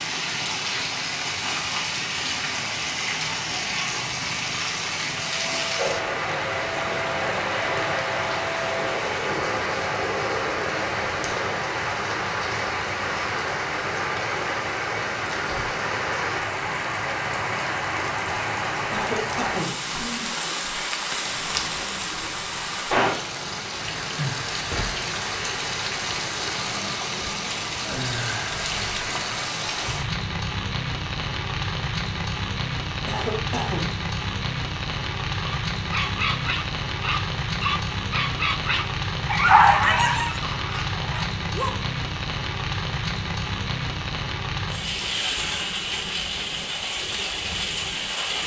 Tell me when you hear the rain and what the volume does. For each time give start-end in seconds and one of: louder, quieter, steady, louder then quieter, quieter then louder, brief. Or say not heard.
0.0-48.4 steady.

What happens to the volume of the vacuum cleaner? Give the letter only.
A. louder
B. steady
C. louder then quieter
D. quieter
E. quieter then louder
B.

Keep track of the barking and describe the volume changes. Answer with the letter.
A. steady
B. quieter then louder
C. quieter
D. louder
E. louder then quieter
E.